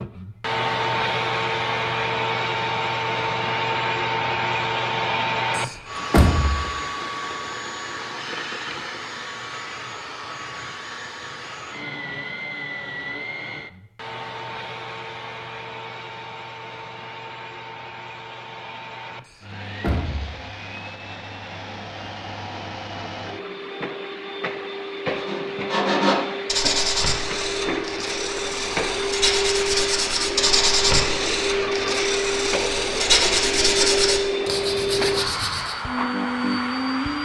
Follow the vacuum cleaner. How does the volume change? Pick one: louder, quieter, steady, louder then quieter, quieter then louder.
quieter then louder.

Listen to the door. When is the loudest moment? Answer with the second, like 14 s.
6 s.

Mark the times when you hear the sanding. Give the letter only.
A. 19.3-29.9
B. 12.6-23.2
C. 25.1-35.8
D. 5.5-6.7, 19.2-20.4
C.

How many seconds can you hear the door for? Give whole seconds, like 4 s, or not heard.
2 s.